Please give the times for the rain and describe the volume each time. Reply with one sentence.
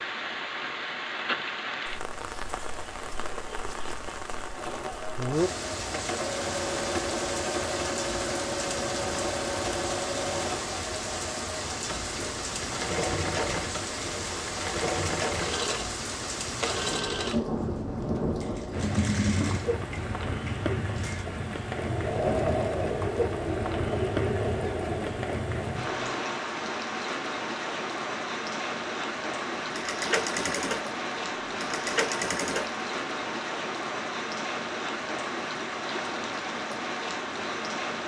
The rain can be heard from 0.0 to 38.0 s, at a steady volume.